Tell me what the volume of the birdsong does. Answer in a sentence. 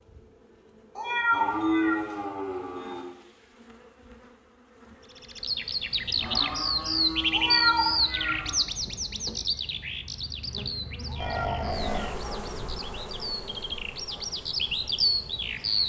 The loudness of the birdsong goes down, then up.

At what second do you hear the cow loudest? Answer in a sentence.
The loudest moment of the cow is at 2 seconds.